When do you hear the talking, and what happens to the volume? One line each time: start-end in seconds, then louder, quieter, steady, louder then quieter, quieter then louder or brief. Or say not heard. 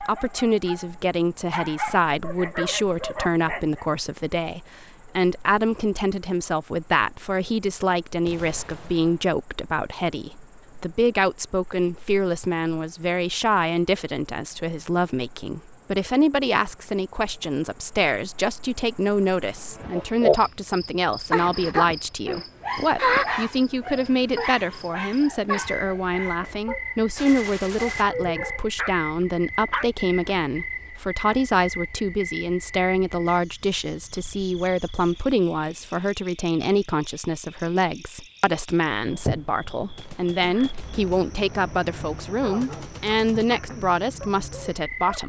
0.1-45.2 steady.